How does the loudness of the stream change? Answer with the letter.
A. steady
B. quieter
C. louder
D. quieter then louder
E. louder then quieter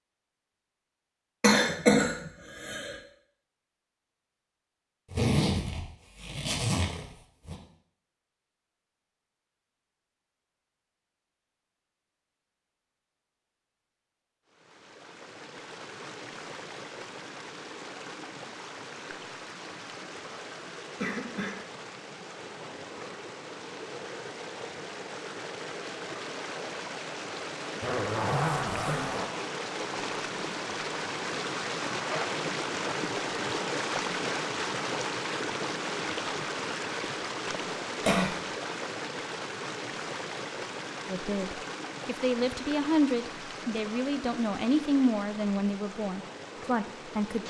E.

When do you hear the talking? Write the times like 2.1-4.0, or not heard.
41.0-47.4.